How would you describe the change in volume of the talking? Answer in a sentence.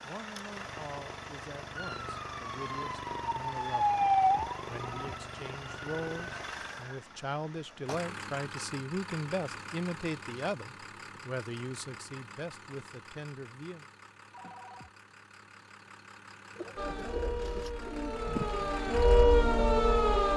The volume of the talking goes up, then down.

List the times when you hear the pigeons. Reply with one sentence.
You can hear the pigeons from 16.6 to 18.8 s.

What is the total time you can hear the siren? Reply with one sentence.
You can hear the siren for 9 seconds altogether.